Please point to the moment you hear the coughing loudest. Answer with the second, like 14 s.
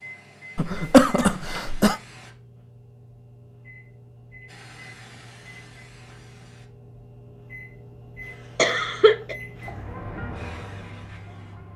1 s.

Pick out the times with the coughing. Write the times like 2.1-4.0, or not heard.
0.6-1.9, 8.6-9.3.